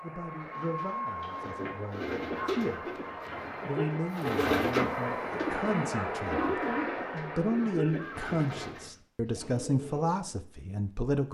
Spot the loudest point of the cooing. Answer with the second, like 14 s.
5 s.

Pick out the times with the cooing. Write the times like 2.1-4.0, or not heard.
0.3-10.4.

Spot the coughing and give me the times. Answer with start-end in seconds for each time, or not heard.
2.3-4.0, 6.3-8.3.